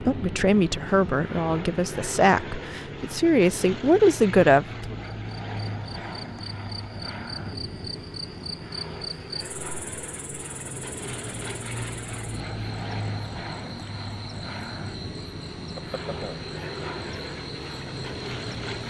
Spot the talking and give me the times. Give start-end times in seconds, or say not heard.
0.1-5.0.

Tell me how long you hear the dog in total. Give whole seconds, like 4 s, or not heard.
not heard.